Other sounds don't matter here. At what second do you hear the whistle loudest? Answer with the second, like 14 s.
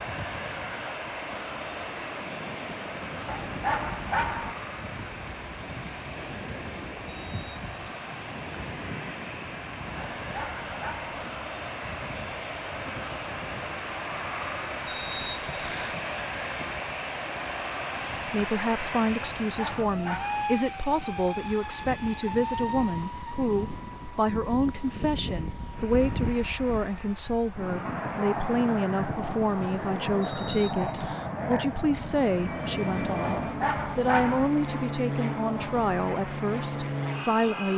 15 s.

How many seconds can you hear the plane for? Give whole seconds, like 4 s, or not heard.
38 s.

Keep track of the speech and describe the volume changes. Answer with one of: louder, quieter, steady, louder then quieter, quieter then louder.
steady.